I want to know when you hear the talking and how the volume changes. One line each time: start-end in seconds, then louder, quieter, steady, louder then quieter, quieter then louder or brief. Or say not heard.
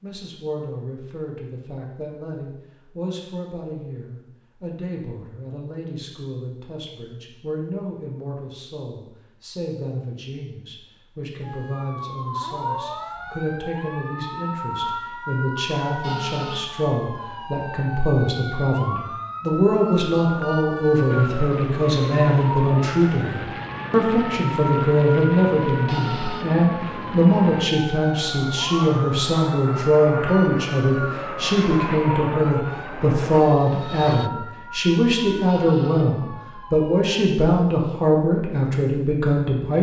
0.0-39.7 louder.